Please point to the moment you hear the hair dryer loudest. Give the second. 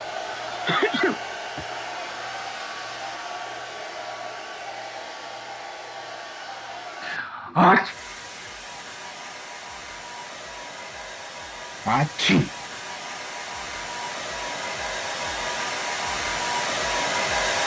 17 s.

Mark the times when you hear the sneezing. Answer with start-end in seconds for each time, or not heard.
0.7-1.6, 7.0-8.0, 11.8-12.5.